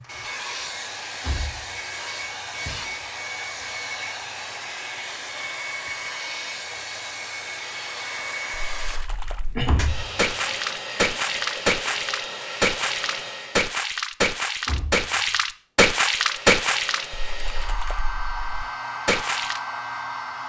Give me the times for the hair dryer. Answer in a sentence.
The hair dryer can be heard from 0.0 to 13.8 s and from 15.9 to 20.4 s.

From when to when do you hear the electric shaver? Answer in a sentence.
You can't hear the electric shaver here.